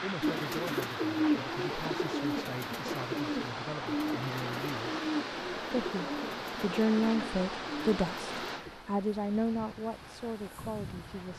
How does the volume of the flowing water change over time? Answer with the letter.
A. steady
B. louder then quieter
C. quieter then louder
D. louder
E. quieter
E.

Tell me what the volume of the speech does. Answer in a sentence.
The volume of the speech goes up, then down.